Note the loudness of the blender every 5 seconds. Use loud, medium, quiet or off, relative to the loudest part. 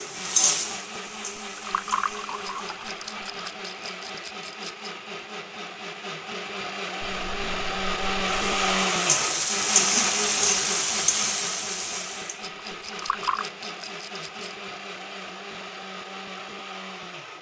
medium, loud, medium, medium.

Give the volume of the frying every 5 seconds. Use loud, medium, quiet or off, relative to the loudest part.
medium, loud, loud, off.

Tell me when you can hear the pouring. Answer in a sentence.
You can hear the pouring from 1.6 to 3.5 s, from 7.0 to 8.8 s and from 13.0 to 13.4 s.